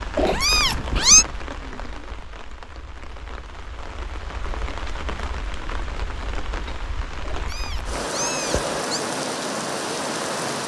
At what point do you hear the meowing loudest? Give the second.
1 s.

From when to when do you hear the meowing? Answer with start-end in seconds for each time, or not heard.
0.1-1.2, 7.2-9.0.